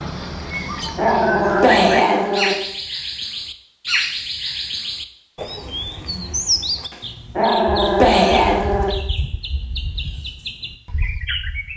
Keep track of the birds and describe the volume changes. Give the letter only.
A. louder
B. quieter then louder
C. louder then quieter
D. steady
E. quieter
E.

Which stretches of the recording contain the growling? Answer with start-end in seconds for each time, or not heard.
0.6-2.5, 6.9-8.9.